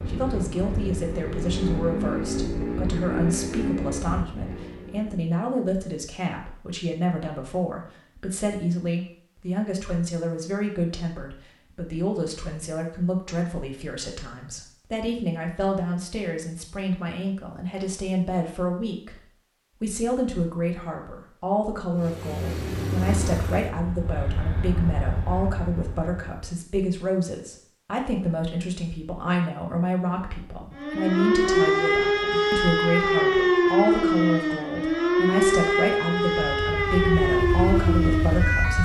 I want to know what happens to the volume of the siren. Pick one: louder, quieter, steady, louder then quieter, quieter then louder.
steady.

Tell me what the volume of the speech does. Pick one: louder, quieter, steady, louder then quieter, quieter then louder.
steady.